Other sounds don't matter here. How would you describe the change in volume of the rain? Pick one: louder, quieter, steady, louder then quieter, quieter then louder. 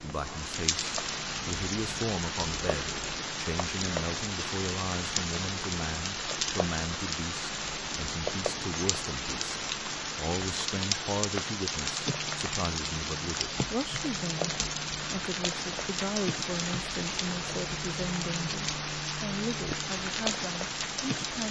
steady.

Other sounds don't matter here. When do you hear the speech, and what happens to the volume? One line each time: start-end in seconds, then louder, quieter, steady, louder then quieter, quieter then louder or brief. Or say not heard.
0.0-21.4 steady.